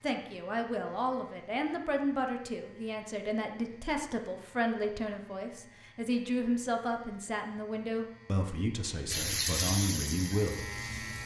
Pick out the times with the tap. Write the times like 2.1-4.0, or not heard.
9.1-11.2.